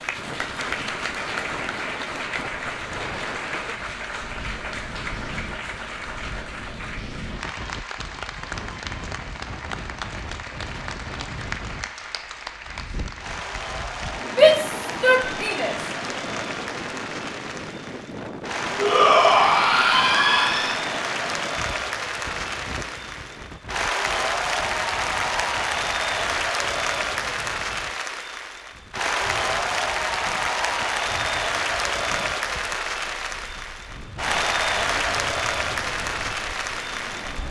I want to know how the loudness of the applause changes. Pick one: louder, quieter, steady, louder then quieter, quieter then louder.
louder.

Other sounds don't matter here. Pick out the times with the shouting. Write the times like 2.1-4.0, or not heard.
14.2-16.2, 18.8-20.8.